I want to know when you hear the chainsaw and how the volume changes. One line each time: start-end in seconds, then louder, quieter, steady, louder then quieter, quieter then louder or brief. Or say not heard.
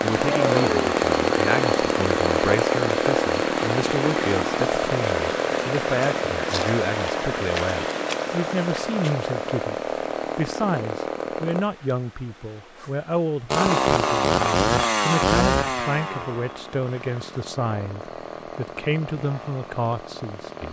0.0-11.7 quieter
13.5-20.6 quieter.